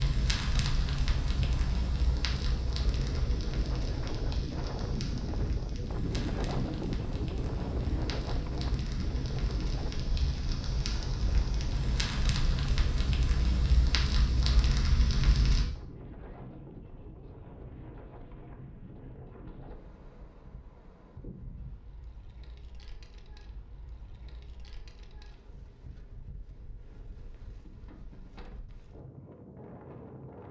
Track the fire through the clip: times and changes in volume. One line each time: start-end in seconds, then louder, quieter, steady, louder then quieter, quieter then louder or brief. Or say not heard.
0.0-15.7 quieter then louder.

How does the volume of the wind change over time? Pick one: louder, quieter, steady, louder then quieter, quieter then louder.
quieter.